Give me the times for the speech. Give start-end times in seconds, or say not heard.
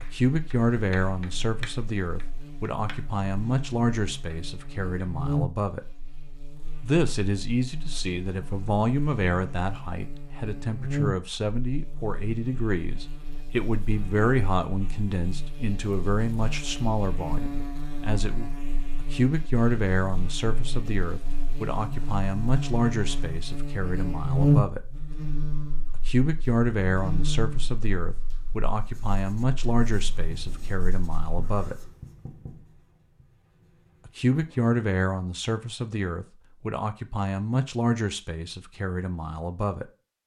0.0-5.8, 6.8-24.8, 25.9-31.8, 34.0-39.9.